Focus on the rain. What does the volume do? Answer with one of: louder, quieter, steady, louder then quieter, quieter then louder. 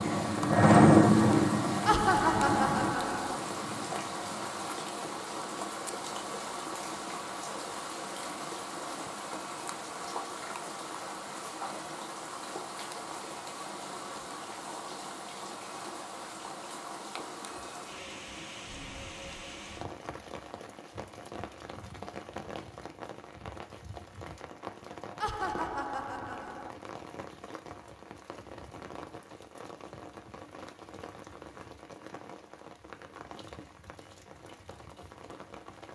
quieter.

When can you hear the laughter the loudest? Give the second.
2 s.